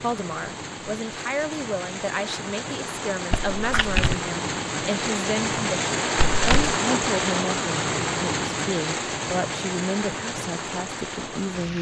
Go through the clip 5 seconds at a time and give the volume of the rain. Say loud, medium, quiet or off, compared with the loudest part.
medium, loud, medium.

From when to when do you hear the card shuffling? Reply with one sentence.
You can hear the card shuffling from 3.3 to 4.2 s and from 6.2 to 6.8 s.